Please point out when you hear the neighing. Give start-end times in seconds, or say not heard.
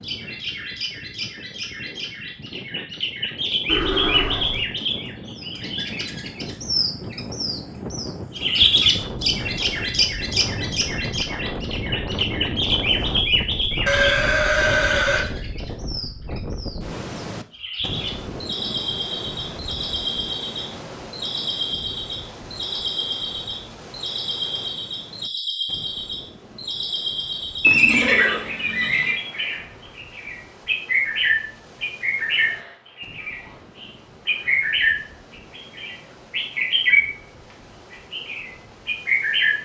3.6-4.7, 13.8-15.2, 27.6-29.1.